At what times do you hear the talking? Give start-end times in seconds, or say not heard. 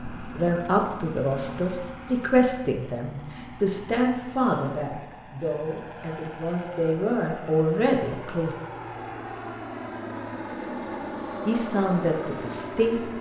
0.2-8.6, 11.4-13.1.